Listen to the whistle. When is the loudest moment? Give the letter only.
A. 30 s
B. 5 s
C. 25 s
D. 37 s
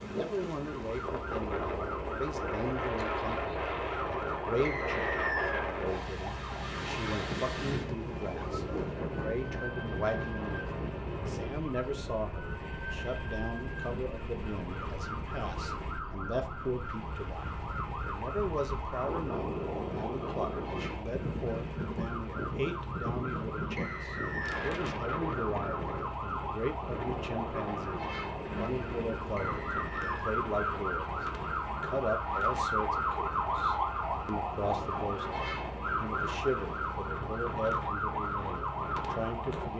B.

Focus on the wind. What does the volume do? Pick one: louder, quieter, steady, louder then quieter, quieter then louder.
quieter.